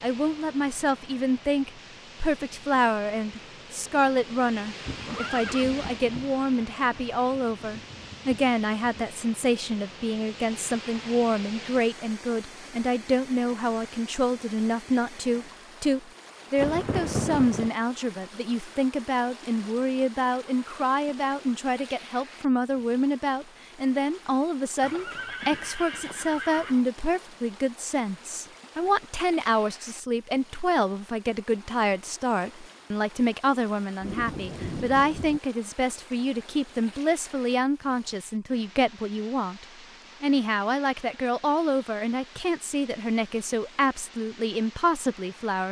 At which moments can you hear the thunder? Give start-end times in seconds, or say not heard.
4.7-9.1, 16.6-17.7, 34.0-35.4.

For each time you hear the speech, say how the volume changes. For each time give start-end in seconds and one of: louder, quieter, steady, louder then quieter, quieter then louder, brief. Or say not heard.
0.0-45.6 steady.